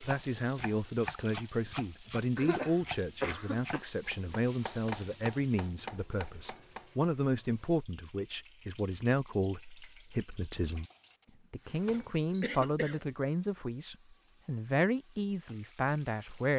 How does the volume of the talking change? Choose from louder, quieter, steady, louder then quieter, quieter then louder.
steady.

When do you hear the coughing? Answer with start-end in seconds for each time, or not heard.
2.4-3.9, 11.9-13.0.